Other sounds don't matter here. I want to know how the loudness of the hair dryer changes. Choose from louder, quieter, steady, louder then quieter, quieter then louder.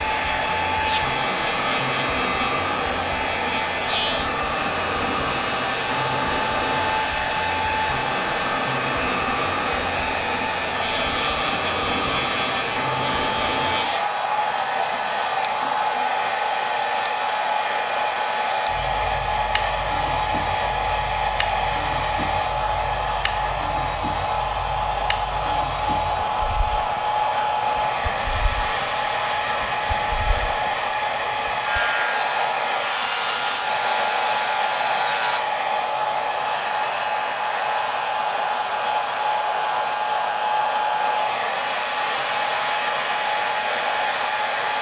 steady.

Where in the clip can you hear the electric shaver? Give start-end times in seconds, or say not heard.
0.0-44.7.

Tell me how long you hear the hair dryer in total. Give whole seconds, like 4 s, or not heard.
45 s.